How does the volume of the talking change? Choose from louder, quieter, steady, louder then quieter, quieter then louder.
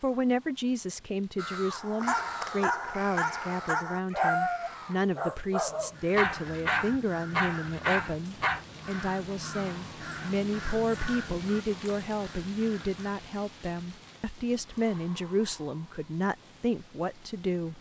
steady.